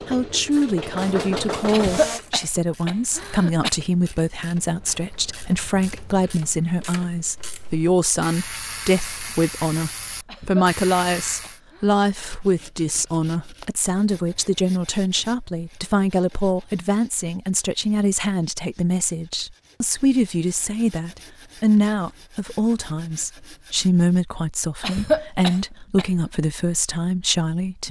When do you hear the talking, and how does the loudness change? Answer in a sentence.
You can hear the talking from 0.1 to 27.8 s, at a steady volume.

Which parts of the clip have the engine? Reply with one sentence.
The engine can be heard from 0.0 to 2.2 s.